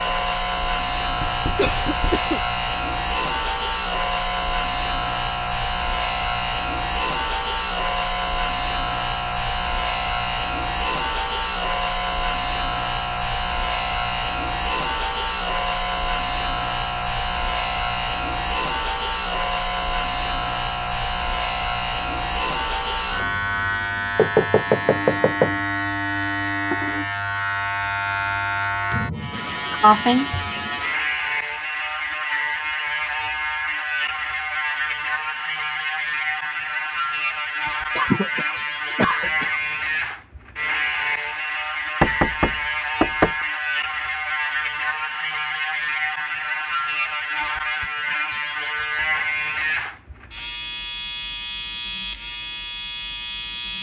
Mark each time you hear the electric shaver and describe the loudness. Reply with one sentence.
You can hear the electric shaver from 0.0 to 53.7 s, at a steady volume.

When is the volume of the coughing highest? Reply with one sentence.
The volume of the coughing peaks at 30 seconds.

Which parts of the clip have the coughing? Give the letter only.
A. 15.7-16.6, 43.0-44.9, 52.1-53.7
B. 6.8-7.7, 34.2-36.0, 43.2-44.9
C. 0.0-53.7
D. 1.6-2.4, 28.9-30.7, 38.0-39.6
D.